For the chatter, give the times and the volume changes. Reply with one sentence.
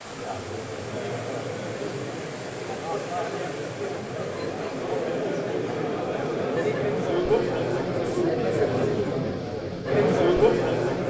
The chatter can be heard from 0.0 to 11.0 s, getting louder.